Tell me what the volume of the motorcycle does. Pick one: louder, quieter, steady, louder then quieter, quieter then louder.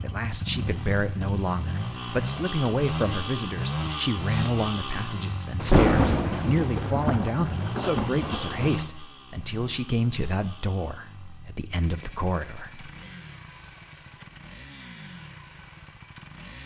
quieter.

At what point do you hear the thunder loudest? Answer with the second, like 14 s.
6 s.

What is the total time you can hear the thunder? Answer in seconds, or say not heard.
3 s.